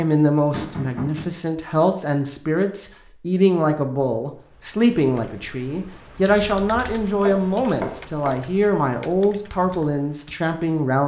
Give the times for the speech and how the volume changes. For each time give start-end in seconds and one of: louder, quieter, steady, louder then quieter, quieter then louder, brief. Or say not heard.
0.0-11.0 steady.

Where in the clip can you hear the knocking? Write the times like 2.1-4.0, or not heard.
0.5-1.3, 7.2-8.4.